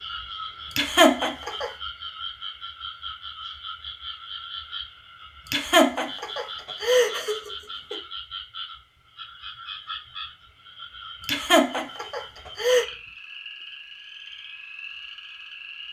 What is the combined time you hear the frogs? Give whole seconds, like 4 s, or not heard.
16 s.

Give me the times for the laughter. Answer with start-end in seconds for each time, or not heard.
0.8-1.7, 5.5-8.0, 11.2-12.8.